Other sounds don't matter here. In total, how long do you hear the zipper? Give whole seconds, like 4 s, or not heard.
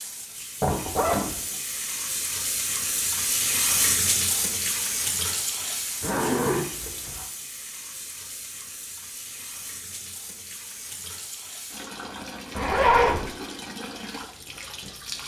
3 s.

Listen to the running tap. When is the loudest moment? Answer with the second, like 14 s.
4 s.